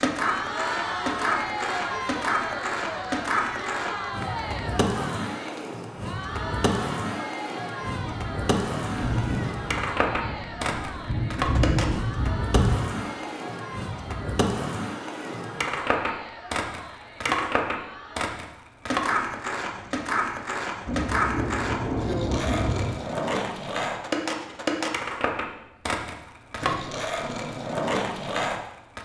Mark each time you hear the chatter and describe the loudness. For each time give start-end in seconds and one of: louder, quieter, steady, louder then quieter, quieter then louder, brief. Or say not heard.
0.1-18.4 quieter.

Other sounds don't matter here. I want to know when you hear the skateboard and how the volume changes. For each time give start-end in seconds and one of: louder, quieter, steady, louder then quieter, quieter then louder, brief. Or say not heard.
0.0-28.9 steady.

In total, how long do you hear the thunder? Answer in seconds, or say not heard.
7 s.